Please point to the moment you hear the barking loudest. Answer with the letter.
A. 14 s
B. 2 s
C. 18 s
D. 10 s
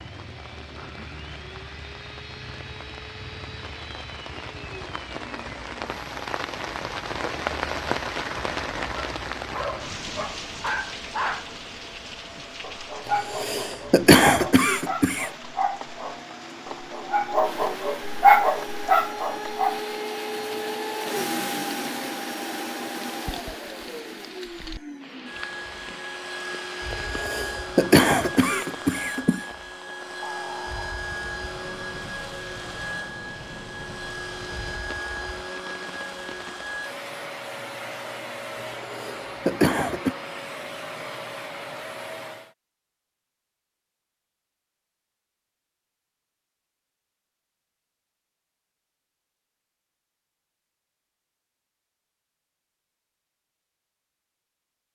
C.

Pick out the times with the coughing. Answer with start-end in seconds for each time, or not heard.
13.1-15.3, 26.9-29.4, 38.8-40.1.